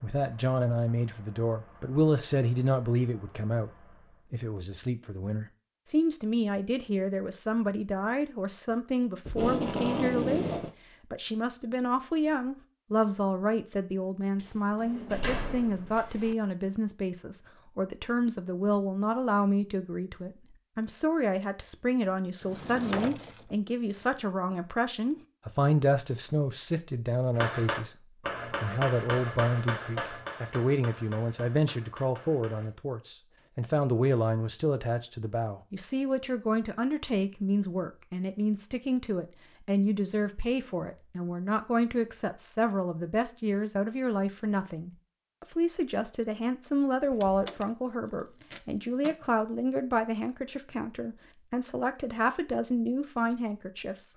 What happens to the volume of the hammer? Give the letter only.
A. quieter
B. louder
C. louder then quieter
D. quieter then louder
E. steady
A.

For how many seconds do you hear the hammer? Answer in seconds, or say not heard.
5 s.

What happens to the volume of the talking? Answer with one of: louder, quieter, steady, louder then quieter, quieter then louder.
steady.